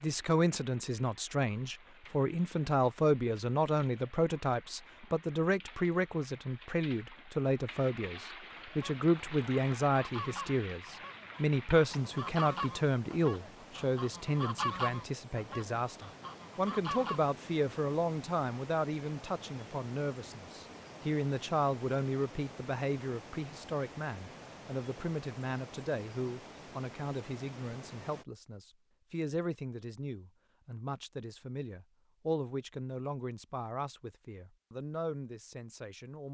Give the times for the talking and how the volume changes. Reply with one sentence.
The talking can be heard from 0.0 to 36.2 s, getting quieter.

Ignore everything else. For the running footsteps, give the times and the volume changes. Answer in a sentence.
The running footsteps can't be heard in this clip.